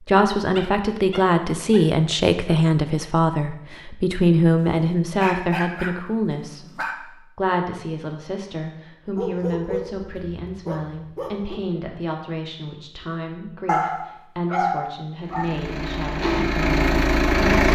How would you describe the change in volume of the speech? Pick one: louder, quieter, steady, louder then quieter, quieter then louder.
quieter.